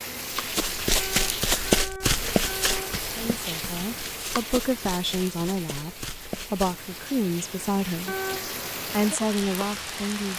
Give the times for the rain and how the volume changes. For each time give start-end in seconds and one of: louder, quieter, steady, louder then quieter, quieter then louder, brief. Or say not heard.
0.0-10.3 quieter then louder.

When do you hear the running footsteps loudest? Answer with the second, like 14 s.
2 s.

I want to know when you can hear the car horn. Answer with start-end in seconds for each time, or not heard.
0.9-3.0, 8.1-8.6.